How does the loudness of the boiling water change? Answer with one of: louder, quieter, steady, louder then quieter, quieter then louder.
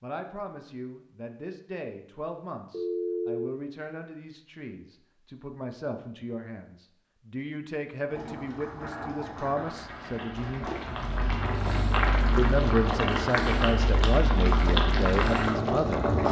louder.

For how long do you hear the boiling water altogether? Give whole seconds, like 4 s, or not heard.
8 s.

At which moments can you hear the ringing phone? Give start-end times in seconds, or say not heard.
2.7-3.5.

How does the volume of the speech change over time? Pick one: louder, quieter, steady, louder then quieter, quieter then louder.
louder.